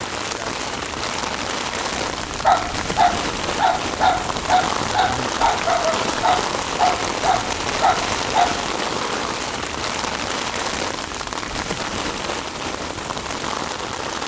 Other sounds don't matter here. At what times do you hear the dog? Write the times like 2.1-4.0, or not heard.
2.0-8.7.